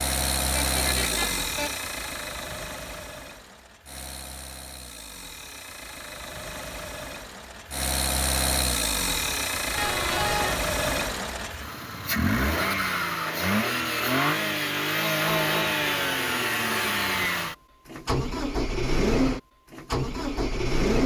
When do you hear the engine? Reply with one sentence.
The engine can be heard from 0.0 to 21.0 s.